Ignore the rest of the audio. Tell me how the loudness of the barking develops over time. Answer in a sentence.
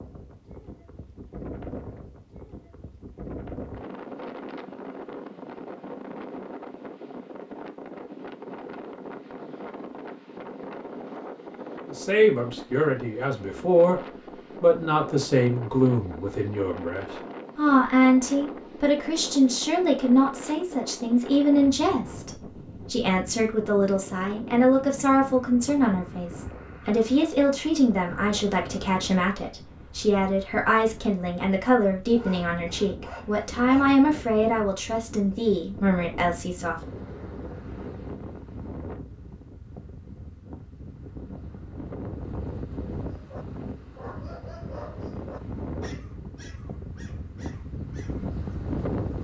The volume of the barking goes down.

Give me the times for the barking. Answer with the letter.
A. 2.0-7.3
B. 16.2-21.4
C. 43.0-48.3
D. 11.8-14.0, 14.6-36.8
C.